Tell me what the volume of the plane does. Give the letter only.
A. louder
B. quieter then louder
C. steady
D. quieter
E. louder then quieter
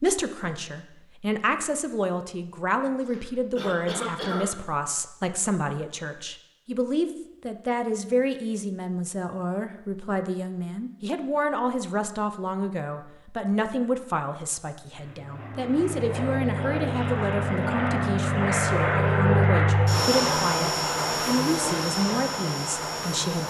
E.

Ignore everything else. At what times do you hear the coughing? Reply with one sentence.
The coughing can be heard from 3.0 to 4.5 s.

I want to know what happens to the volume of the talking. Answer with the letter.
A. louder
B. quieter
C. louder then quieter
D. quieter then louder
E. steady
E.